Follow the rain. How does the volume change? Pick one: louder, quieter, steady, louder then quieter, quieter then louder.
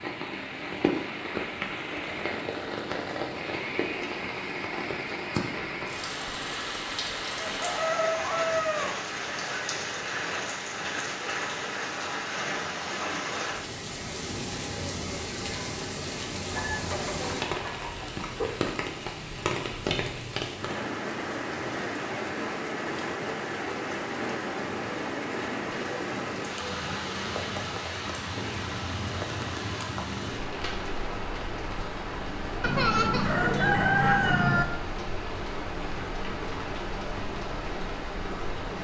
steady.